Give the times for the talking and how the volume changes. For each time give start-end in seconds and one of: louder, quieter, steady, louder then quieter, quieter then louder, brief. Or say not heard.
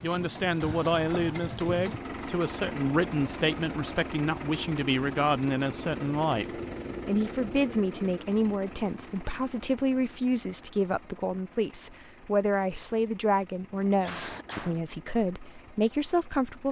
0.0-16.6 steady.